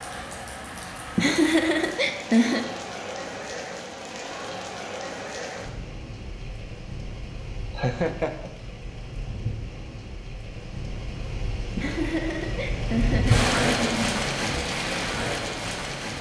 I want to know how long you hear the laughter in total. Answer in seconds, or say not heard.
5 s.